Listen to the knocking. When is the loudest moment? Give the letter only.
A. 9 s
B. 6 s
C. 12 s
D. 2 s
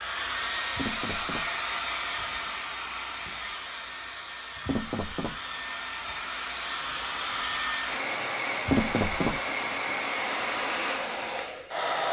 A.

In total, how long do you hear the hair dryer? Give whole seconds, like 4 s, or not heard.
12 s.